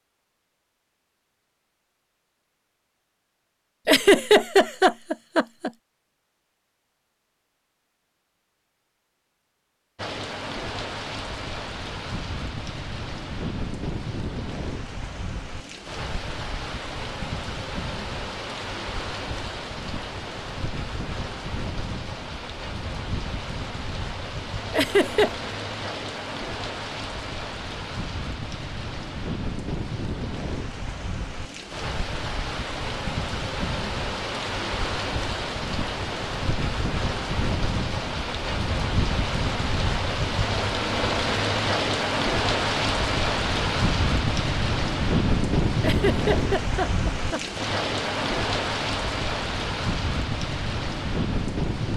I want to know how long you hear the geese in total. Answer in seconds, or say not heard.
not heard.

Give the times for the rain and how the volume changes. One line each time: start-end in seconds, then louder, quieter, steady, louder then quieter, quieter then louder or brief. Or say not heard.
9.9-51.9 louder.